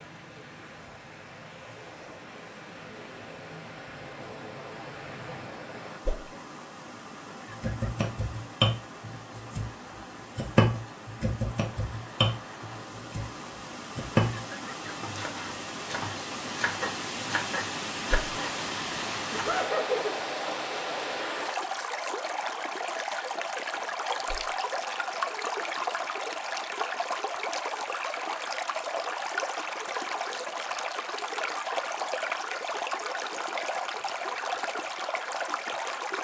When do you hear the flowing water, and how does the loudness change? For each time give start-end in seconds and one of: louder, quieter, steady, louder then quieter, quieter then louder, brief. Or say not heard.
0.0-36.1 louder.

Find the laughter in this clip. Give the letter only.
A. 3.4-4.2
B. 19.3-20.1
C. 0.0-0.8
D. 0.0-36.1
B.